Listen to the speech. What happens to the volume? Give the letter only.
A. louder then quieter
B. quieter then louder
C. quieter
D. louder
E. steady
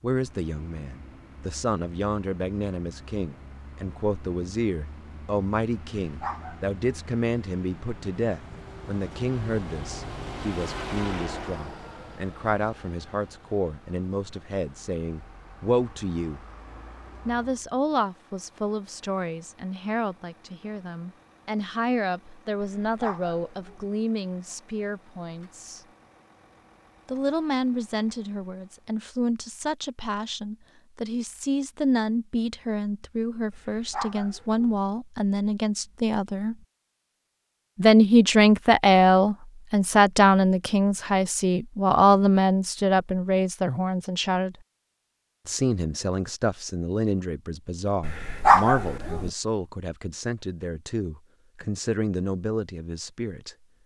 A.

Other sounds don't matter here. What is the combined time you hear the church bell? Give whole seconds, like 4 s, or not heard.
not heard.